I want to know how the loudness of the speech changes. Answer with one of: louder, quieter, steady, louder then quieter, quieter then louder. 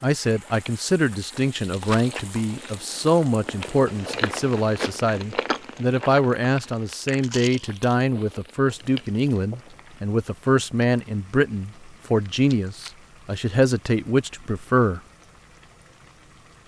steady.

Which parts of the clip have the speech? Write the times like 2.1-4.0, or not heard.
0.0-15.0.